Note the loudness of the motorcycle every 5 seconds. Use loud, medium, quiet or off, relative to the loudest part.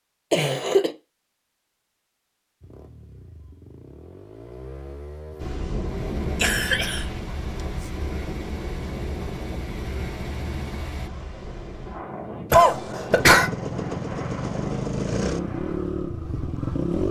quiet, quiet, loud, loud.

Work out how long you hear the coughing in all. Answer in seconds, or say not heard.
2 s.